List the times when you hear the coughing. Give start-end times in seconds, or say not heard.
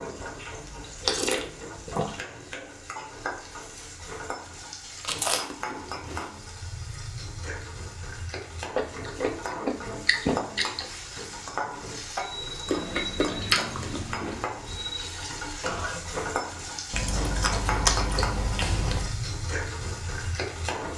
15.6-16.3.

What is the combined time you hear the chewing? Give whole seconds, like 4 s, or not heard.
9 s.